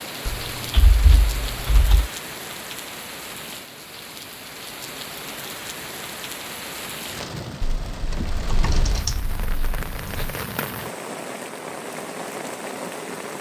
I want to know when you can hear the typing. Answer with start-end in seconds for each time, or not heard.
0.2-2.1, 7.6-10.3.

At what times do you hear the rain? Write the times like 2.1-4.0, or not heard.
0.0-13.3.